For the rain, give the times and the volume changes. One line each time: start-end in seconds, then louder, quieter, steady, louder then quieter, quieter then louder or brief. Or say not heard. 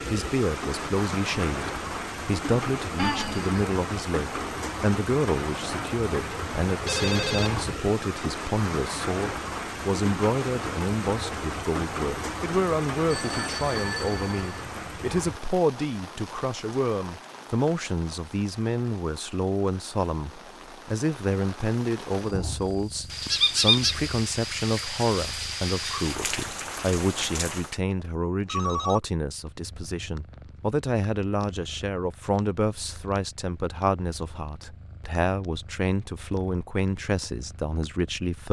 0.0-27.8 quieter then louder.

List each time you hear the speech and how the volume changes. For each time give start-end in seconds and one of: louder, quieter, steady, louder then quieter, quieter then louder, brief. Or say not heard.
0.1-38.4 steady.